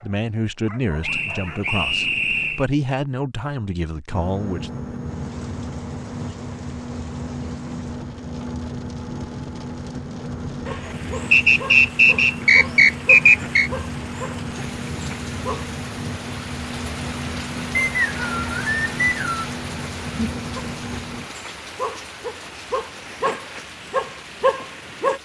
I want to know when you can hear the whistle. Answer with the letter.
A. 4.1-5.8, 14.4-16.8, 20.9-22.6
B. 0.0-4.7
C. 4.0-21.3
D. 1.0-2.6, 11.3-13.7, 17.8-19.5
D.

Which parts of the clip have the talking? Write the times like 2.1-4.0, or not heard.
0.0-4.7.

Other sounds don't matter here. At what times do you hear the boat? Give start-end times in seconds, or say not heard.
4.0-21.3.